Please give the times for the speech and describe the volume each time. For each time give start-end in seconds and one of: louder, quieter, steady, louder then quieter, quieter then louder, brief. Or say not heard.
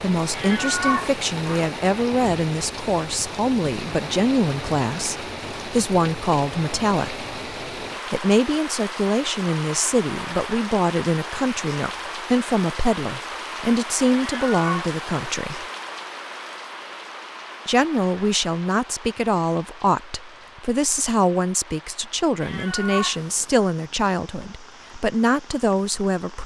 0.0-7.2 steady
8.1-15.7 steady
17.6-26.4 steady.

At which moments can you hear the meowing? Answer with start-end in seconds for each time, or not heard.
0.3-1.7, 14.2-14.9, 22.4-23.7.